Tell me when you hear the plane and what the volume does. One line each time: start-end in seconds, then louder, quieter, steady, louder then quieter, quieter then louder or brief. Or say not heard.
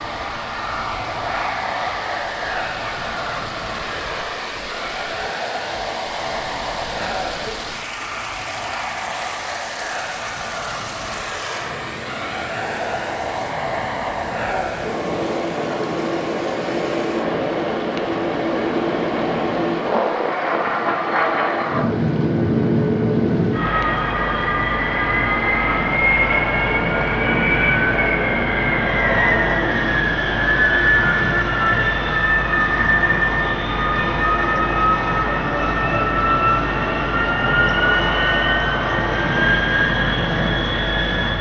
0.0-41.3 louder.